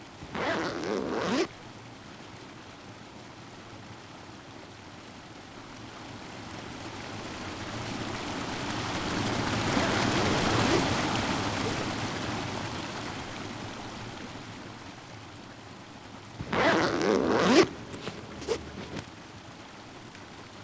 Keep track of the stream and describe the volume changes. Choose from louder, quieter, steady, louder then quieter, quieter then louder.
louder then quieter.